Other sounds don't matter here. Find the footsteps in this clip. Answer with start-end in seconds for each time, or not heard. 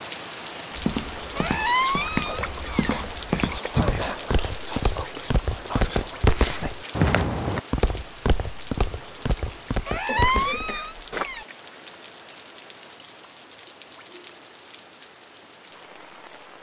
0.8-11.2.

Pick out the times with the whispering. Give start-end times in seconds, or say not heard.
1.6-7.1.